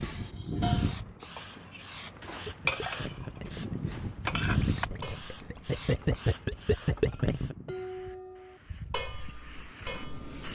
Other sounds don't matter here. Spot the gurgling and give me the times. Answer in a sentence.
You can hear the gurgling from 2.2 to 7.5 s.